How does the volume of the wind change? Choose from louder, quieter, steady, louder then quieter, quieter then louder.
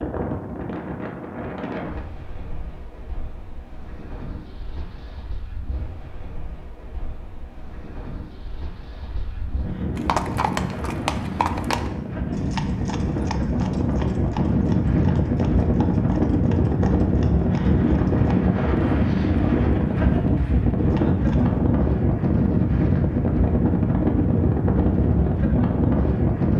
louder.